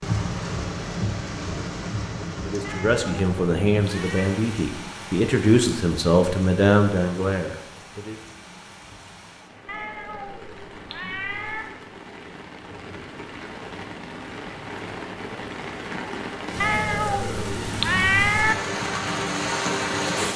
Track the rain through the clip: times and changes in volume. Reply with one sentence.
You can hear the rain from 0.0 to 20.3 s, getting quieter then louder.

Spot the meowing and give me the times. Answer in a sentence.
You can hear the meowing from 2.6 to 4.2 s, from 9.7 to 11.7 s and from 16.6 to 18.6 s.